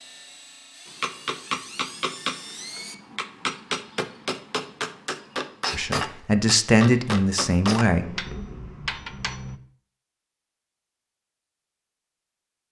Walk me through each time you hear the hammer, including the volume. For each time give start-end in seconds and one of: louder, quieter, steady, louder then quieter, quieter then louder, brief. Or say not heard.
0.8-9.6 steady.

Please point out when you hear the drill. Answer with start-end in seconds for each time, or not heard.
0.0-3.0.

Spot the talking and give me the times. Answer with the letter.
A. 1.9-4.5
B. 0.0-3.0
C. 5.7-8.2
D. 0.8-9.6
C.